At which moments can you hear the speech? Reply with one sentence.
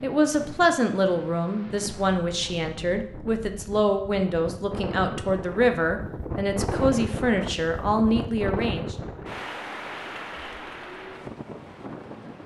The speech can be heard from 0.0 to 8.9 s.